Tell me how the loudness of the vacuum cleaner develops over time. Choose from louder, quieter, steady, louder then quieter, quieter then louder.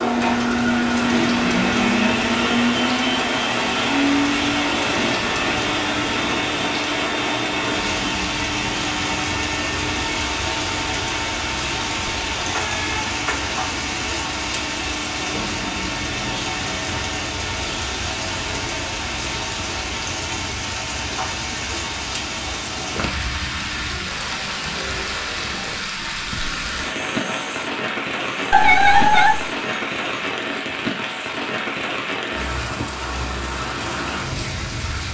quieter.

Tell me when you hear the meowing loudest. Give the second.
29 s.